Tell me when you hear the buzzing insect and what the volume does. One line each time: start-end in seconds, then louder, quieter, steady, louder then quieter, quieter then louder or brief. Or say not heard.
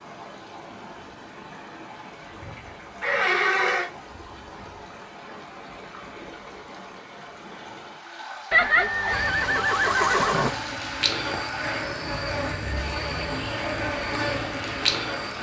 9.1-15.3 louder.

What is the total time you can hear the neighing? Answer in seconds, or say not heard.
3 s.